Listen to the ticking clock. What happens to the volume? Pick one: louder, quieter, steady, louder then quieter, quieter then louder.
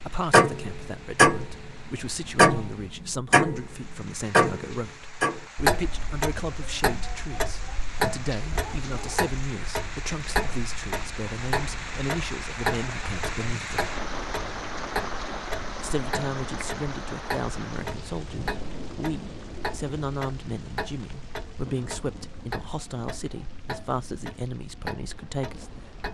quieter.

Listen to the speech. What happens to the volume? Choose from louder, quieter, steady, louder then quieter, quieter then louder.
steady.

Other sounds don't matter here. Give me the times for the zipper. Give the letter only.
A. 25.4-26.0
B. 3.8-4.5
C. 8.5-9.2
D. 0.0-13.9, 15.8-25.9
C.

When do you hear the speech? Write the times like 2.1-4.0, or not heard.
0.0-13.9, 15.8-25.9.